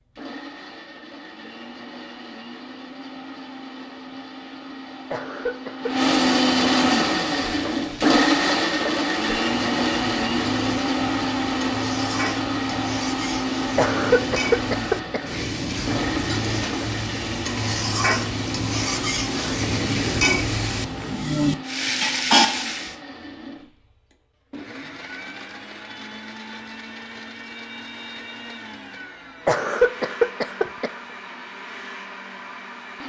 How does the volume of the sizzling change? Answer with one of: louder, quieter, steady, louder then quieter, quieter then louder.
louder.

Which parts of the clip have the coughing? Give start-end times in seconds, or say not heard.
5.1-6.1, 13.8-15.4, 29.4-30.9.